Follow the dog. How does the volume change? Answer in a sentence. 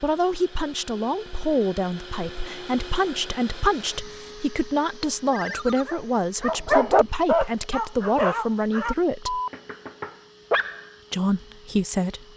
The loudness of the dog goes up, then down.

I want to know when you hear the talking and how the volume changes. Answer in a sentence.
The talking can be heard from 0.0 to 9.4 s, at a steady volume; and briefly from 11.1 to 12.3 s.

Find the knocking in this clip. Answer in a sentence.
The knocking can't be heard in this clip.